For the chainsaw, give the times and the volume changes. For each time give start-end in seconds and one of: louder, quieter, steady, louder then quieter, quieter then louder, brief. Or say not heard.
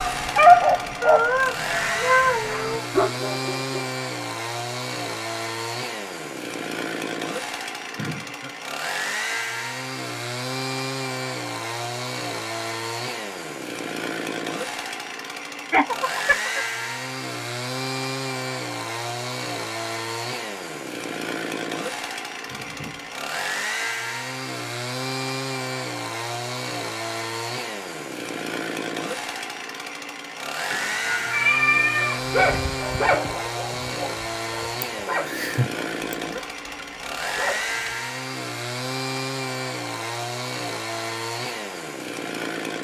0.0-42.7 steady.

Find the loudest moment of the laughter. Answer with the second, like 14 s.
16 s.